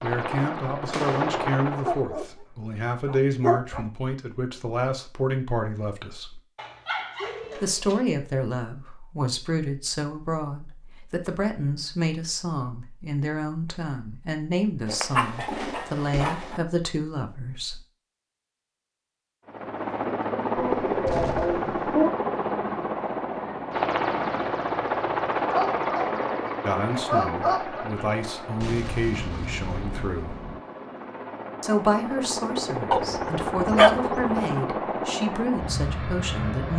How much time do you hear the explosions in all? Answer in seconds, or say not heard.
3 s.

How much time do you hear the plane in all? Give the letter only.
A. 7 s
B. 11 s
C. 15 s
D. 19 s
D.